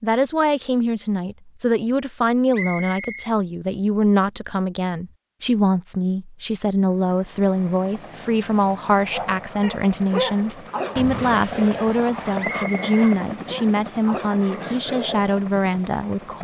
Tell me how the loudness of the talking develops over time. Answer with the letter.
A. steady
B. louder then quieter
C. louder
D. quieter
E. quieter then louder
A.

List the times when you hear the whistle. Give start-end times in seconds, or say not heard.
2.5-3.3, 12.3-13.2.